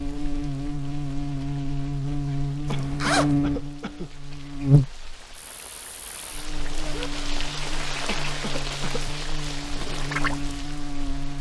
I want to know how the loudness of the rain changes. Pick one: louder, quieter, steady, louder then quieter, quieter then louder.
louder.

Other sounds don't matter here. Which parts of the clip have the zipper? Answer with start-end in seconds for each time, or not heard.
2.6-3.4, 6.5-7.1.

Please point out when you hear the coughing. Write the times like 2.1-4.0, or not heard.
2.6-4.1, 8.1-9.0.